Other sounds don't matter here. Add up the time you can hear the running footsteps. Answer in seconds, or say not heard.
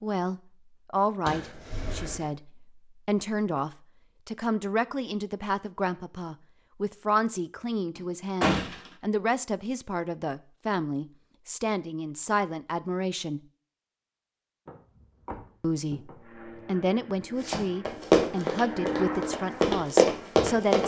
3 s.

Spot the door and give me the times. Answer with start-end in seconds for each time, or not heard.
1.2-2.3, 8.0-8.9, 14.7-16.4.